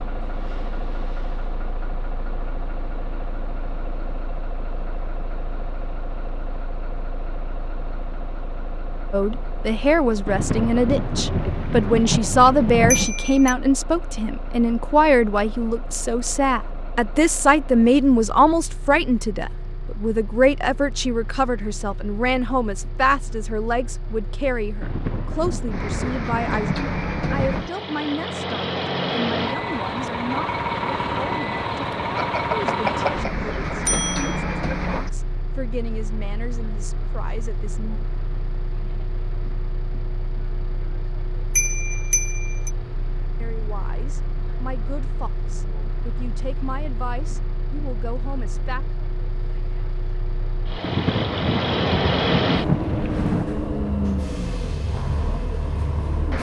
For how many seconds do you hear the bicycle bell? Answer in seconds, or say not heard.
4 s.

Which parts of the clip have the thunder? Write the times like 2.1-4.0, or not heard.
10.2-13.1, 24.8-27.7, 50.8-53.5.